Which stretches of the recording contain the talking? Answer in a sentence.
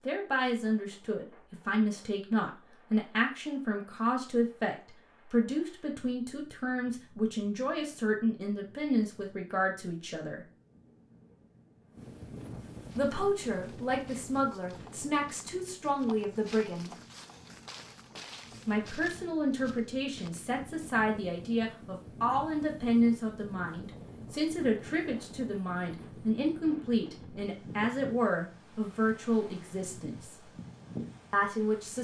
The talking can be heard from 0.1 to 10.4 s, from 12.9 to 16.9 s, from 18.6 to 30.5 s and from 31.3 to 31.9 s.